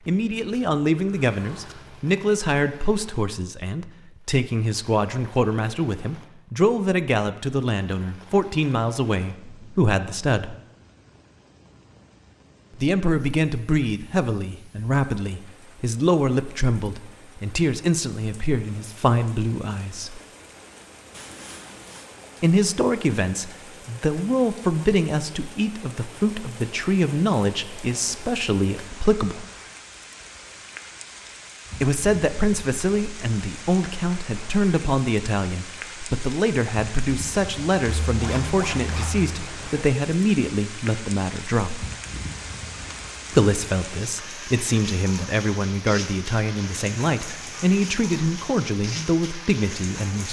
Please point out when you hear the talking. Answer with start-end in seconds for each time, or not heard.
0.1-10.6, 12.8-20.2, 22.4-29.4, 31.8-41.9, 43.3-50.2.